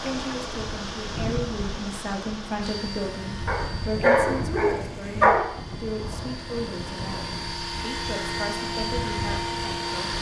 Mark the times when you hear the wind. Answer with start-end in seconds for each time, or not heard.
0.0-10.1.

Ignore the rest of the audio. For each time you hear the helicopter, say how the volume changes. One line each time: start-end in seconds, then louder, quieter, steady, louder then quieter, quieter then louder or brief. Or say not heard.
2.6-10.1 quieter then louder.